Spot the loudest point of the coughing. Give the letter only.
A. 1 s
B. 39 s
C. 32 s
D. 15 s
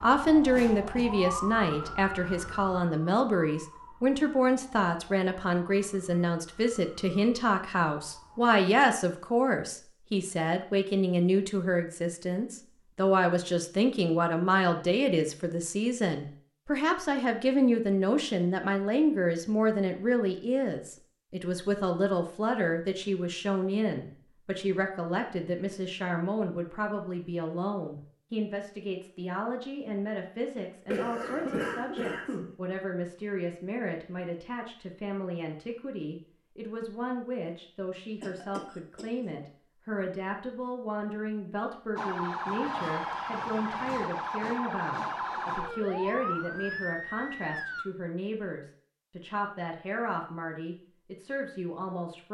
C.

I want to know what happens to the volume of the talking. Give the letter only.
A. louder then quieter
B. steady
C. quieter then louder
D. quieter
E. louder
D.